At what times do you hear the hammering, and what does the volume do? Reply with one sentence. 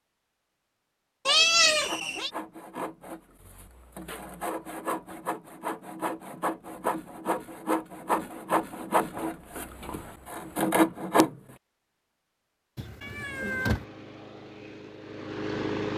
The hammering can't be heard in this clip.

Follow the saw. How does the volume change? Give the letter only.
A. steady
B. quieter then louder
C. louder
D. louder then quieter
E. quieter
C.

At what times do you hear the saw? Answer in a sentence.
You can hear the saw from 1.8 to 11.3 s.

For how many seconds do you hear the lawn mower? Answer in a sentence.
The lawn mower can be heard for 3 seconds in total.